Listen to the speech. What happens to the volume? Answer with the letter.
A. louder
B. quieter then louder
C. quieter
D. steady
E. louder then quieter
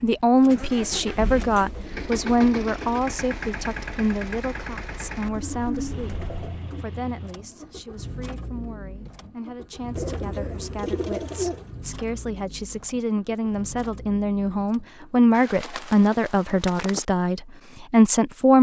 B.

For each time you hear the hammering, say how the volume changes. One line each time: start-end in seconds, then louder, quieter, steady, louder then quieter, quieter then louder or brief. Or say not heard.
not heard.